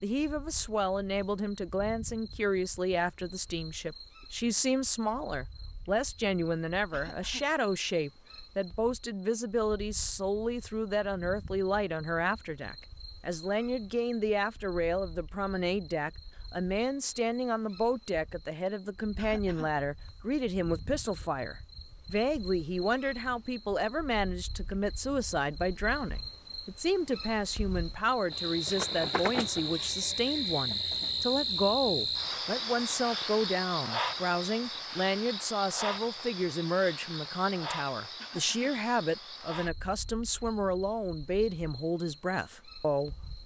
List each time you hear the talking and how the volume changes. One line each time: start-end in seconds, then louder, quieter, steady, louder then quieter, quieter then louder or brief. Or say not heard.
0.0-43.2 steady.